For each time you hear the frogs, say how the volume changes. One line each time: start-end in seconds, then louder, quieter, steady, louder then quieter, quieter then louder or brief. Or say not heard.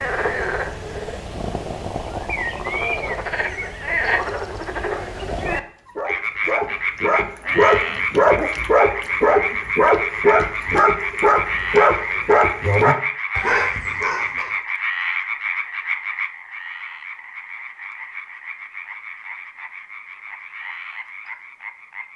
0.0-22.1 quieter.